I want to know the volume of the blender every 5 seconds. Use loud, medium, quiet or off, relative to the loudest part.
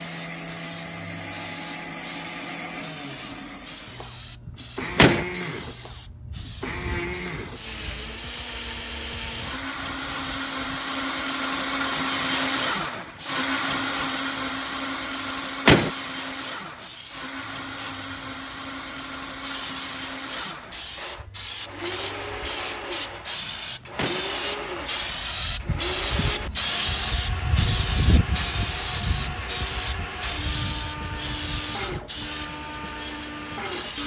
medium, medium, loud, medium, medium, medium, medium.